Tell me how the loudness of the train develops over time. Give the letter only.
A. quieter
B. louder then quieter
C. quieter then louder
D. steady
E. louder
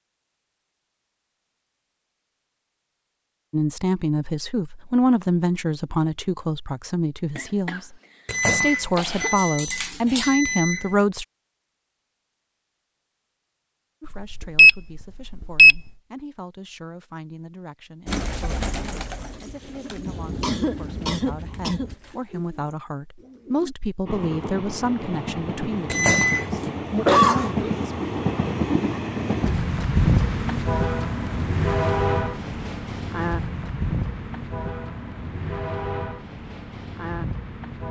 B.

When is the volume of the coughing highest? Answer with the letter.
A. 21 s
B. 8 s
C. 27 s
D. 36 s
C.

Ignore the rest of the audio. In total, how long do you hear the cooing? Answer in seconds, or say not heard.
6 s.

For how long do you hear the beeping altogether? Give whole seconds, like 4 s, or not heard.
5 s.